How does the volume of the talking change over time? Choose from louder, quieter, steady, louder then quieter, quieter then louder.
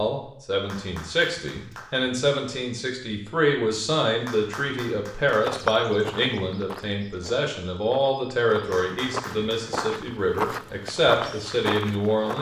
steady.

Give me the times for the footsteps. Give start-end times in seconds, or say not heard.
5.4-12.3.